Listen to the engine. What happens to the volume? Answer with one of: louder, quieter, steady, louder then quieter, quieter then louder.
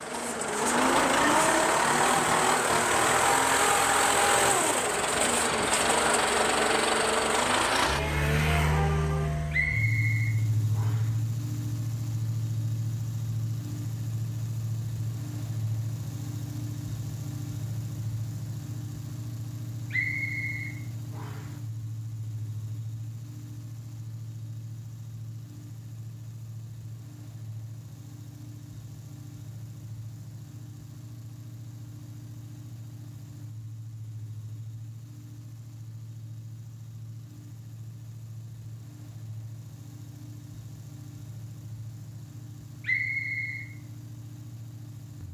quieter.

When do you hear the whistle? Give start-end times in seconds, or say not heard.
9.5-11.1, 19.9-21.5, 42.8-43.6.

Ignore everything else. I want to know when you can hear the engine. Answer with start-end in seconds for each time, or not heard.
0.0-45.2.